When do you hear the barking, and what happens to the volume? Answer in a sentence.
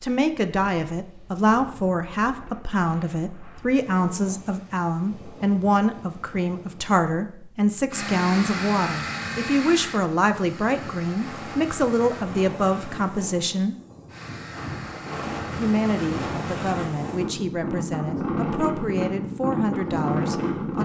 The barking can't be heard in this clip.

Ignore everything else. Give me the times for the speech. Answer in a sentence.
You can hear the speech from 0.0 to 13.8 s and from 15.6 to 20.7 s.